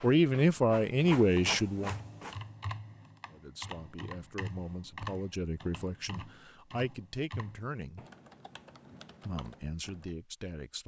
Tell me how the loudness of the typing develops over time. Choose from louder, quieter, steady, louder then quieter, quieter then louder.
quieter.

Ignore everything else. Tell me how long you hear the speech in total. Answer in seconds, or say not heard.
8 s.